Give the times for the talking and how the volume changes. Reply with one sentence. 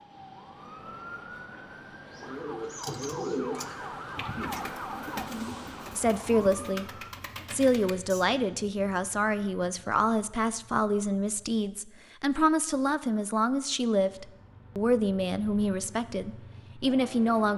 The talking can be heard briefly from 6.0 to 6.8 s; and from 7.5 to 17.5 s, at a steady volume.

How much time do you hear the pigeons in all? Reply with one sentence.
The pigeons can be heard for 6 seconds in total.